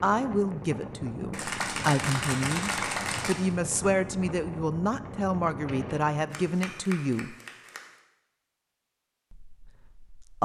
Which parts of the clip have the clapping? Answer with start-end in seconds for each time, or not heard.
1.3-3.4, 6.3-7.8.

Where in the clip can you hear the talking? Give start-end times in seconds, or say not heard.
0.0-7.3, 9.3-10.4.